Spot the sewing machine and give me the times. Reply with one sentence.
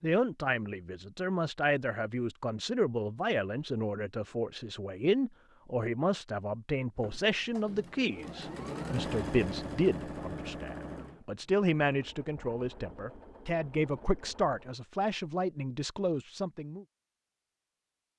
The sewing machine can be heard from 7.0 to 14.8 s.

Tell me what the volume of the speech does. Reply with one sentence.
The volume of the speech stays about the same.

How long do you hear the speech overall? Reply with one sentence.
You can hear the speech for 17 seconds altogether.